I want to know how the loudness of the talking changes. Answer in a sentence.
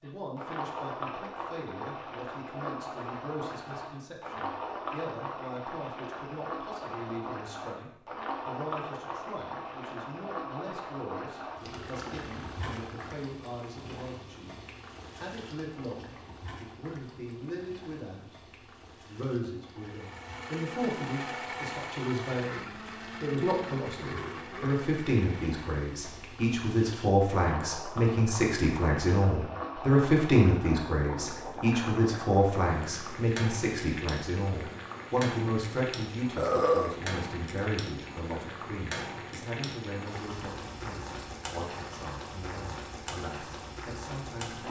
The loudness of the talking goes up, then down.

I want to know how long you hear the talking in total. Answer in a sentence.
The talking can be heard for 44 seconds in total.